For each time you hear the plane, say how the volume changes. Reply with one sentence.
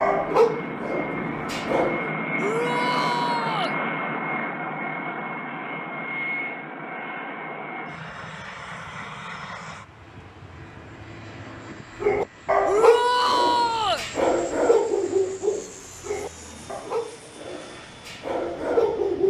You can hear the plane from 0.0 to 19.2 s, getting quieter.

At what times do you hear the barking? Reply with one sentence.
You can hear the barking from 0.0 to 2.1 s and from 12.0 to 19.2 s.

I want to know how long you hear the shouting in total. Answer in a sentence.
The shouting can be heard for 3 seconds in total.